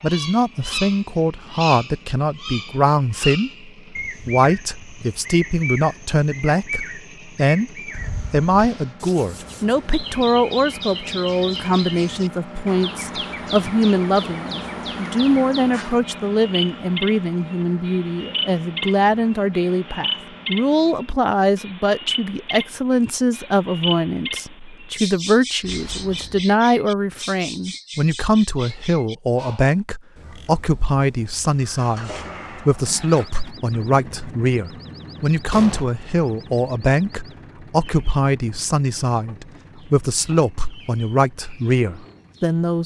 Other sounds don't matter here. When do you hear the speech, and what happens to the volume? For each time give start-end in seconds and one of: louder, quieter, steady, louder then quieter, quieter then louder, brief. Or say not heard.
0.0-42.8 steady.